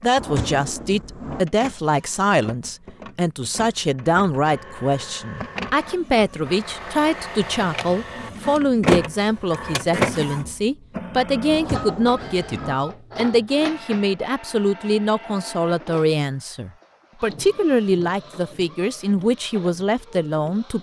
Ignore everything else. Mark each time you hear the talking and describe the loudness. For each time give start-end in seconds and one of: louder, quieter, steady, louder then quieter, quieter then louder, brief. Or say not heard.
0.0-20.7 steady.